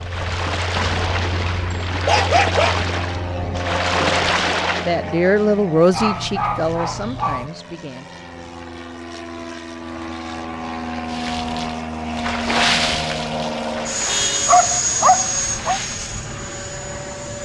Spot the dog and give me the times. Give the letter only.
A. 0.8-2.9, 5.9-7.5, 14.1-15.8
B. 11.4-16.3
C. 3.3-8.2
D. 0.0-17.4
A.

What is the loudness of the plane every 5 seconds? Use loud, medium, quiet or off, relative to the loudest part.
medium, medium, loud, loud.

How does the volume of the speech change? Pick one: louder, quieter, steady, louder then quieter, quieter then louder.
louder then quieter.